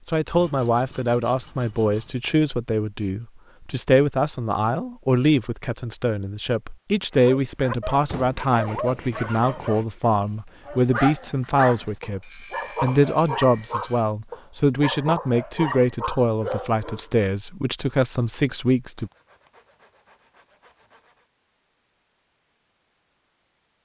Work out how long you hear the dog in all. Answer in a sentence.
You can hear the dog for 10 seconds altogether.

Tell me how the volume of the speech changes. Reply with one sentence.
The volume of the speech stays about the same.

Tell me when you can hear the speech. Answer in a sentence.
The speech can be heard from 0.1 to 19.1 s.